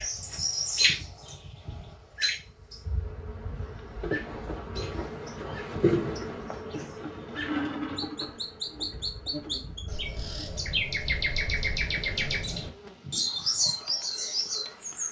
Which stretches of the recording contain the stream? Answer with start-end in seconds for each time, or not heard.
not heard.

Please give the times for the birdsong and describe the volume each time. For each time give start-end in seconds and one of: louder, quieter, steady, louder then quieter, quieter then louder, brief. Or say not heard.
0.0-15.0 quieter then louder.